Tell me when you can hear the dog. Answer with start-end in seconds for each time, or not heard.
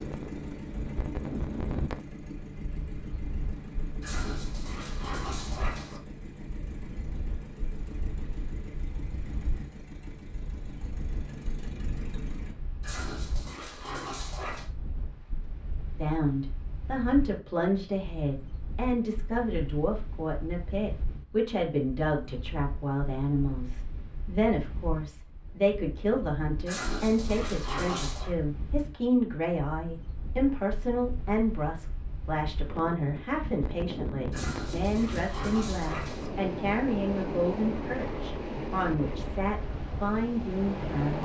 4.0-6.0, 12.8-14.7, 26.6-28.4, 34.3-36.3.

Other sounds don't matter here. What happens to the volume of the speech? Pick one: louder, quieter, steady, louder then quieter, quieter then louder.
steady.